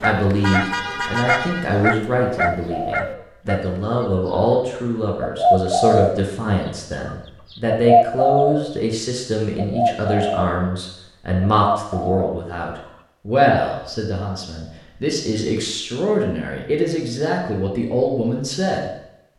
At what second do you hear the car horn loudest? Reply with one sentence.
The volume of the car horn peaks at 1 second.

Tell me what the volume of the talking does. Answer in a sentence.
The volume of the talking stays about the same.